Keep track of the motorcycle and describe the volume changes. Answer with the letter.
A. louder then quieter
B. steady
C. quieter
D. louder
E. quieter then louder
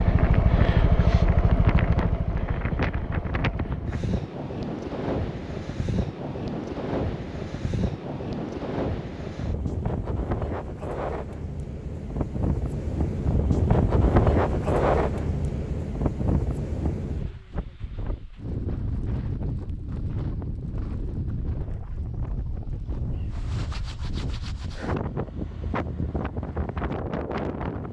C.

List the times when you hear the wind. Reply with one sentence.
The wind can be heard from 0.0 to 27.8 s.